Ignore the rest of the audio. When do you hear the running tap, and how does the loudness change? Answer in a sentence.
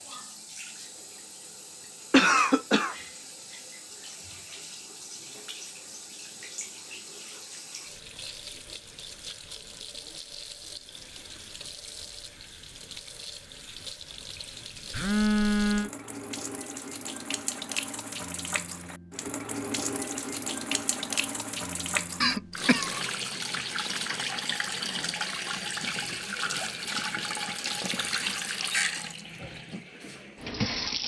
You can hear the running tap from 0.0 to 31.0 s, getting louder.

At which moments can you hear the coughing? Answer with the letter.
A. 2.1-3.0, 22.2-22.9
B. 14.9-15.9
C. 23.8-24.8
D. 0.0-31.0
A.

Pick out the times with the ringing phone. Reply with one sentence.
The ringing phone can be heard from 14.9 to 15.9 s.